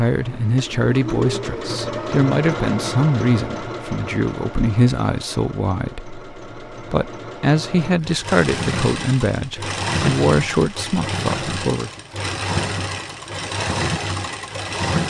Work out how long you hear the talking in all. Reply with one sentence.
The talking can be heard for 12 seconds in total.